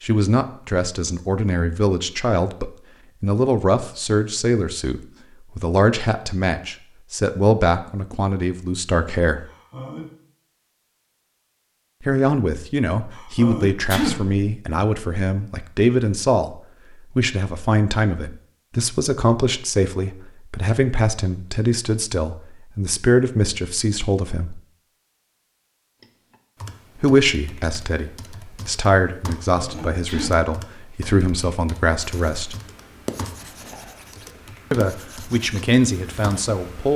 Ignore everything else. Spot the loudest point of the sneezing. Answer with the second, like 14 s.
14 s.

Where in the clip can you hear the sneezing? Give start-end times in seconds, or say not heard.
9.4-10.1, 13.1-14.2, 29.6-30.4.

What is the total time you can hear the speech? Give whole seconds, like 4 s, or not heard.
30 s.